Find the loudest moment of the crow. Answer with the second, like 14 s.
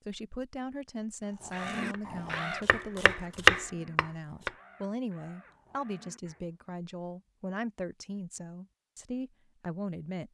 2 s.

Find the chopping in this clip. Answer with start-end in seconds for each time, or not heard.
1.9-4.5.